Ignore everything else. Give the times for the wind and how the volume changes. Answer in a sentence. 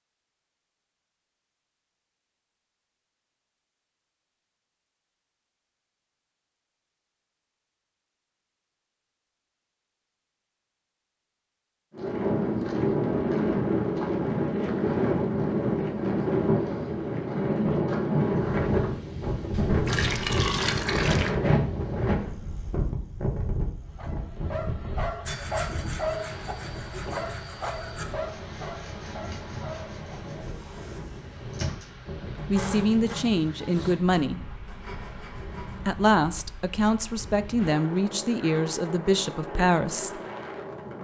You can hear the wind from 11.9 to 40.9 s, getting quieter.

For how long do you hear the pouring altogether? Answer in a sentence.
You can hear the pouring for 2 seconds altogether.